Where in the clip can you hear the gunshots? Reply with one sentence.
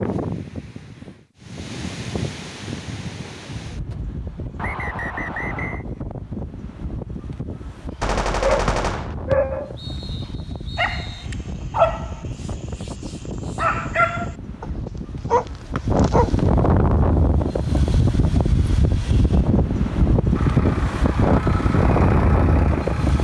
You can hear the gunshots from 8.0 to 9.2 s.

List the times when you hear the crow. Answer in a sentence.
The crow can't be heard in this clip.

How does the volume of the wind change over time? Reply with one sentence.
The volume of the wind goes up.